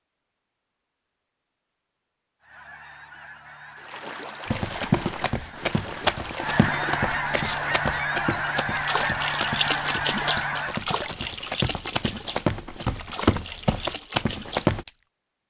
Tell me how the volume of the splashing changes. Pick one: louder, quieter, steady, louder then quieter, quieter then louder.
louder then quieter.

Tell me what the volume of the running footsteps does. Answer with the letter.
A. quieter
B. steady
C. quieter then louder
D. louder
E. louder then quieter
C.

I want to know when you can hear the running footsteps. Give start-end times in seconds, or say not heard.
4.5-14.8.